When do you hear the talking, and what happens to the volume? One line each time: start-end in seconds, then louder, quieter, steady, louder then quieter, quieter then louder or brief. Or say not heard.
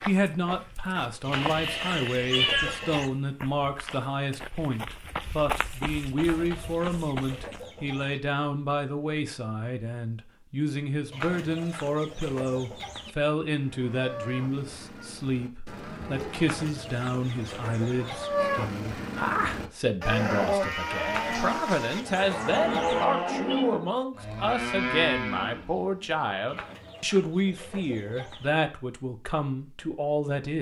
0.1-30.5 steady.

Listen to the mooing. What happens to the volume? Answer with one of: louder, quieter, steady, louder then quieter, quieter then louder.
louder.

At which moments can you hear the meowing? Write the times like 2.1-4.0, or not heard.
1.3-3.0, 22.6-23.7.